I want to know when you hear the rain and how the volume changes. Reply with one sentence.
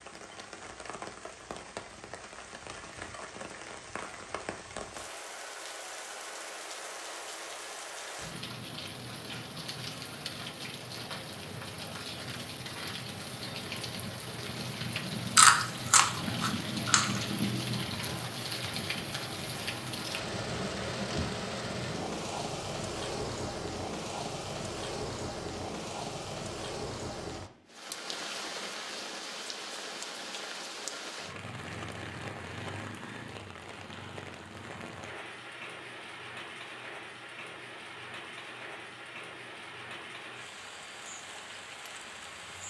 You can hear the rain from 0.0 to 42.6 s, getting louder then quieter.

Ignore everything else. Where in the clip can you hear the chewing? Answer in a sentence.
You can hear the chewing from 15.3 to 17.2 s.